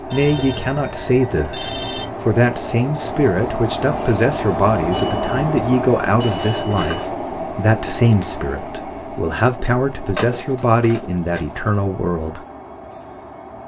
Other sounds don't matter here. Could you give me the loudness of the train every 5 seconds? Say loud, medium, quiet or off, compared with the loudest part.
loud, loud, medium.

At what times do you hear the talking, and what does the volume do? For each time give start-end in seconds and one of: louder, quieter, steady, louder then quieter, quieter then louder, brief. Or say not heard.
0.0-12.4 steady.